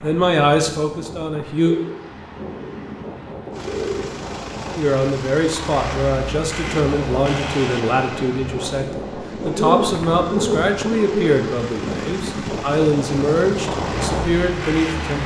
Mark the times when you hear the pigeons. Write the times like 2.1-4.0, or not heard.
1.6-4.2, 9.4-11.3.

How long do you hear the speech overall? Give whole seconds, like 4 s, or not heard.
12 s.